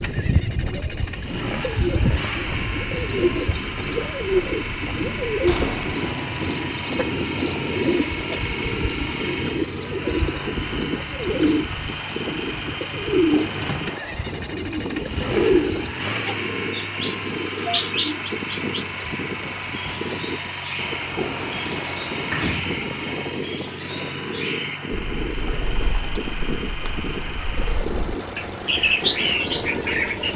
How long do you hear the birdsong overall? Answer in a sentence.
The birdsong can be heard for 30 seconds in total.